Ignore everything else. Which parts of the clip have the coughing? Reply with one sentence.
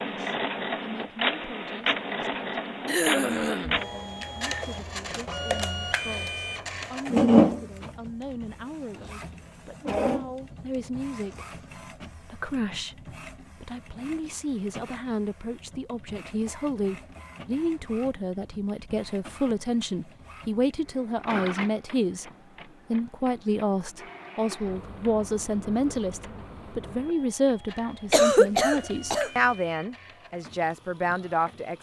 You can hear the coughing from 2.9 to 3.8 s and from 28.1 to 29.3 s.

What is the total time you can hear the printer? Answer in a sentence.
You can hear the printer for 32 seconds altogether.